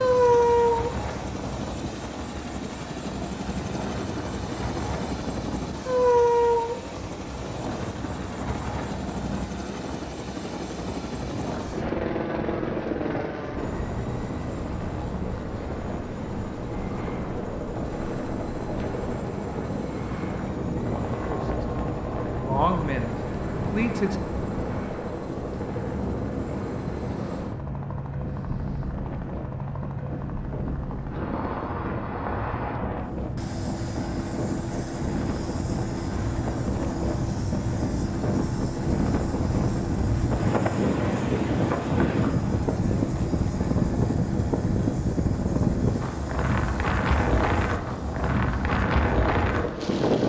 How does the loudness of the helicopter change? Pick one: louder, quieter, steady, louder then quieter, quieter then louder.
quieter.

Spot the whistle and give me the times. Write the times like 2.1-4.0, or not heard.
not heard.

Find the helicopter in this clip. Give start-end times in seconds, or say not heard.
0.0-50.2.